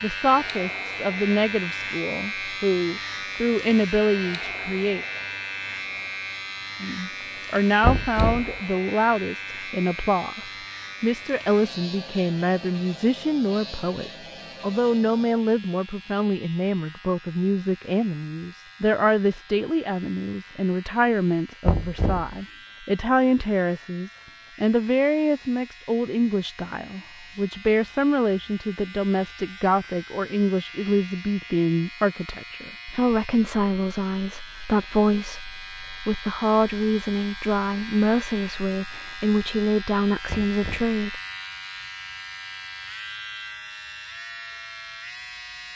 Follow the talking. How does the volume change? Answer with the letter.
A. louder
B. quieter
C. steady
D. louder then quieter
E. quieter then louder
C.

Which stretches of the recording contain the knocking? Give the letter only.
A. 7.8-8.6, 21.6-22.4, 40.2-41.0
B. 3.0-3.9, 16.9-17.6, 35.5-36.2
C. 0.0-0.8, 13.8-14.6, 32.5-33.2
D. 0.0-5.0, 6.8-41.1
A.